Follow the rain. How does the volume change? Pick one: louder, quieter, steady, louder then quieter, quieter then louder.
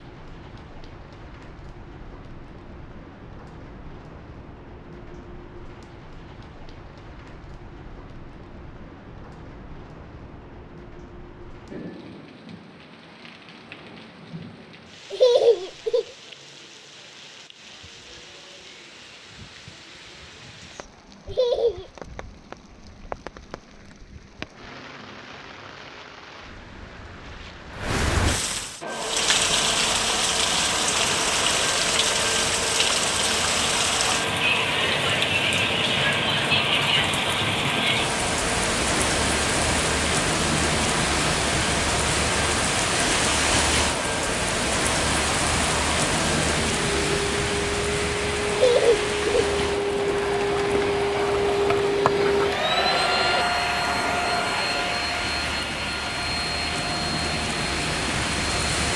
louder then quieter.